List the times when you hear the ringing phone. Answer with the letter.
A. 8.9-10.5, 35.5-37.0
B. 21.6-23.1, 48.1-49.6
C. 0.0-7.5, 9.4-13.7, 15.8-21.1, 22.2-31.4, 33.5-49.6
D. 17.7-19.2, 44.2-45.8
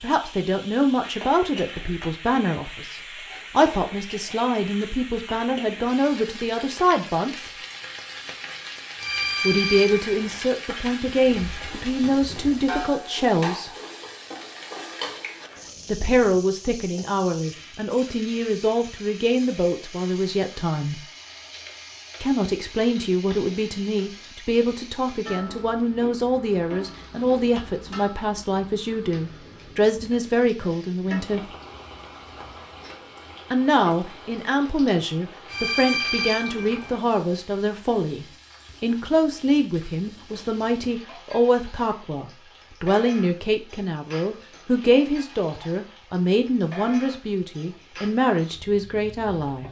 A.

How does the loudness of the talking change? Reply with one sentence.
The loudness of the talking stays about the same.